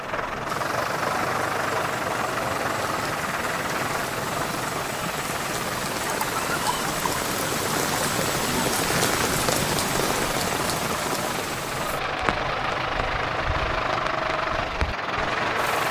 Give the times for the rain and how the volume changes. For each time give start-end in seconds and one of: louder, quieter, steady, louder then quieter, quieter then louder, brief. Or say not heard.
0.0-15.8 louder then quieter.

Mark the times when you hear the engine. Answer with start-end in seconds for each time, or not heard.
0.0-15.8.